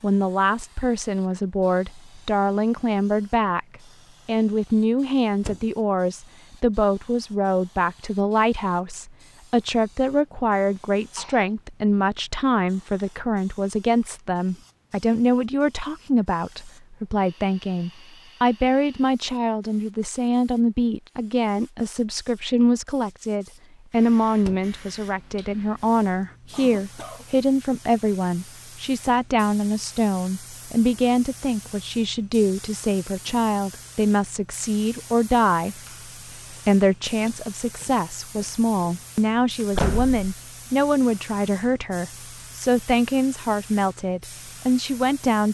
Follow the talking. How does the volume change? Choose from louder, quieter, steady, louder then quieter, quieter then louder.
steady.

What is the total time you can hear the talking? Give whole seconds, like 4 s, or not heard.
44 s.